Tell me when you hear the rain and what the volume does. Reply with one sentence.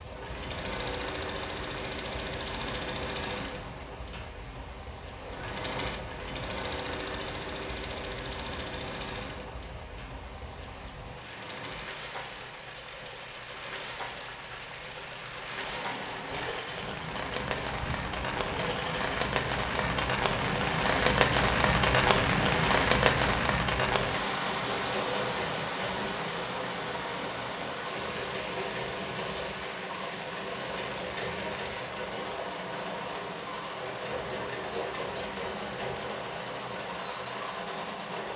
You can hear the rain from 0.0 to 38.3 s, getting louder then quieter.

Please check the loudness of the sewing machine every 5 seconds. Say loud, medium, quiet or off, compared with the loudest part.
loud, loud, medium, loud, loud, loud, loud, loud.